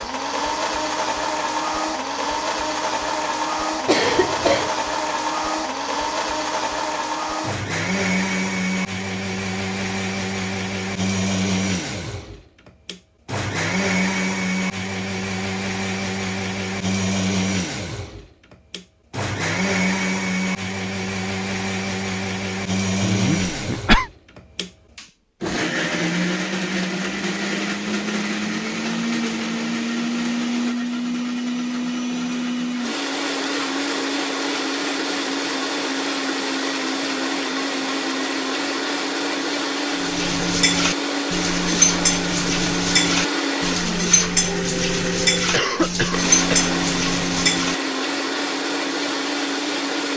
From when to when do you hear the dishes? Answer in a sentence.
You can hear the dishes from 40.0 to 47.8 s.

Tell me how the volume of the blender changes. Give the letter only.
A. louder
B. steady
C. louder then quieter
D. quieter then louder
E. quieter
B.